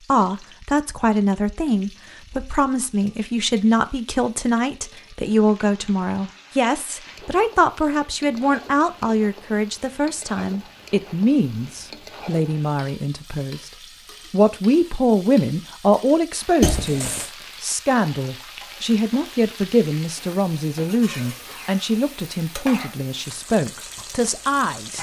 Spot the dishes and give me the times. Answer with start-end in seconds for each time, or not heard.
not heard.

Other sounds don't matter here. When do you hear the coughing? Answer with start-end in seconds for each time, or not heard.
16.6-17.3.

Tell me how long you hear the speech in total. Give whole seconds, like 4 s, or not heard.
24 s.